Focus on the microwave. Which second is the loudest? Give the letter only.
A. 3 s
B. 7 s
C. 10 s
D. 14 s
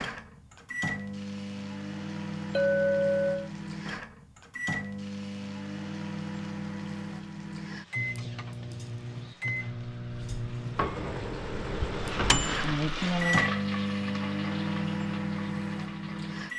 D.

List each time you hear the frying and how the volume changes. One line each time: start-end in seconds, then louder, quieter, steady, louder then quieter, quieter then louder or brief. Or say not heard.
0.0-16.5 louder.